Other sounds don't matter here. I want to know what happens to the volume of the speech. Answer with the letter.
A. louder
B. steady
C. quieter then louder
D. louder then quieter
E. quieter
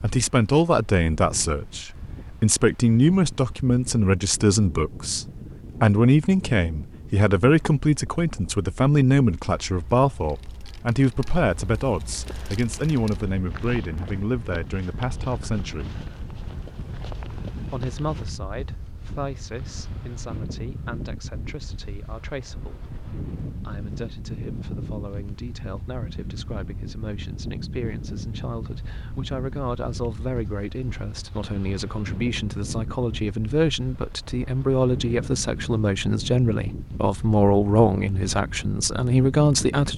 C.